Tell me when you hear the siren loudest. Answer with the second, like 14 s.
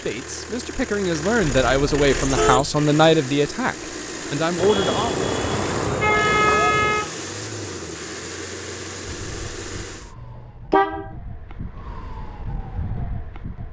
13 s.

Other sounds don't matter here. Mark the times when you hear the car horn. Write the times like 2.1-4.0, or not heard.
1.6-2.8, 4.5-7.1, 10.2-11.1.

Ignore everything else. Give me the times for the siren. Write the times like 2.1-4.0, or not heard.
9.0-13.6.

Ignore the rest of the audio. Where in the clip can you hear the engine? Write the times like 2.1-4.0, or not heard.
0.0-10.2.